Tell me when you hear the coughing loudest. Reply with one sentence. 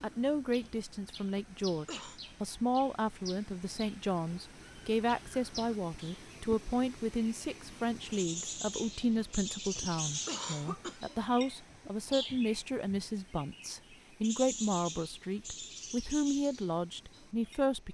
The volume of the coughing peaks at 10 seconds.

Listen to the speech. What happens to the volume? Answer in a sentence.
The loudness of the speech stays about the same.